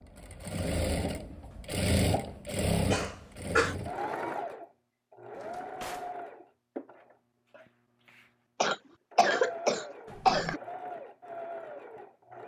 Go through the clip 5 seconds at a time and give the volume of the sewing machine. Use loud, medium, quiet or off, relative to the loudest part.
loud, medium, medium.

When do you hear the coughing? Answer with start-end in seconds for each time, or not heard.
2.9-3.8, 8.6-10.6.